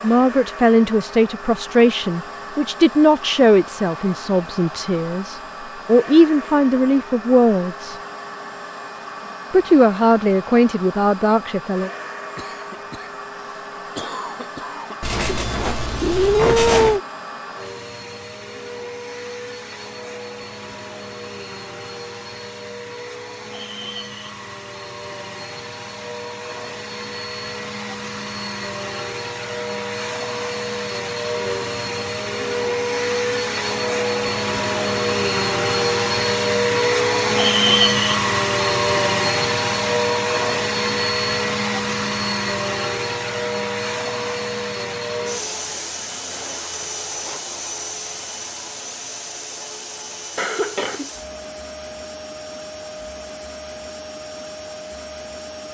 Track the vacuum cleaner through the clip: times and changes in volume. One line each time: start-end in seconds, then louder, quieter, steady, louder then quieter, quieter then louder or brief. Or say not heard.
0.0-55.6 louder then quieter.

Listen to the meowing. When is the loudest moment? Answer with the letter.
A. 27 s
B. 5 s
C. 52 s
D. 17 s
D.